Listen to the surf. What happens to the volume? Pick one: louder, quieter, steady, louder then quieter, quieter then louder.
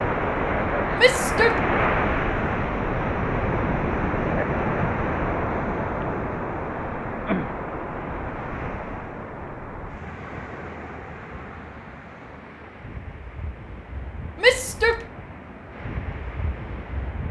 quieter.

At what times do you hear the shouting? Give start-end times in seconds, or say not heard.
0.9-1.6, 14.4-15.1.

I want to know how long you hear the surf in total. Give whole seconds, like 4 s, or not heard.
17 s.